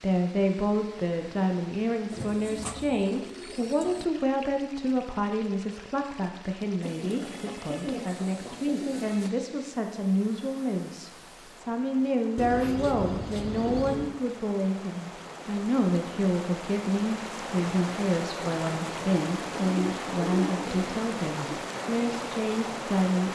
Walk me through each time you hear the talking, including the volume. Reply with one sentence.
The talking can be heard from 0.0 to 23.3 s, at a steady volume.